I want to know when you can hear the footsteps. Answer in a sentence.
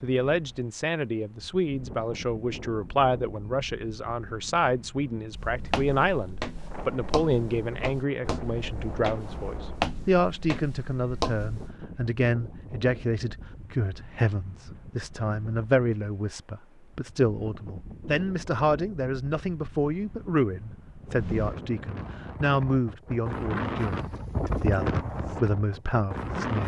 You can hear the footsteps from 5.3 to 11.8 s.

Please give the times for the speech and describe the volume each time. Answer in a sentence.
You can hear the speech from 0.0 to 26.6 s, at a steady volume.